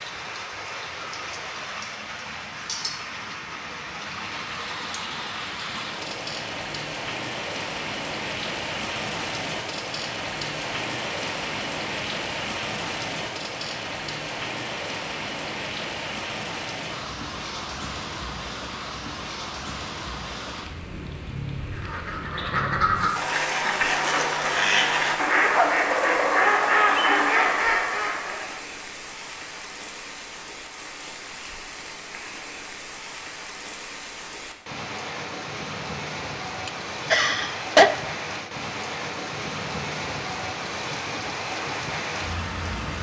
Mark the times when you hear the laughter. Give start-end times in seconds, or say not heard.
36.6-38.0.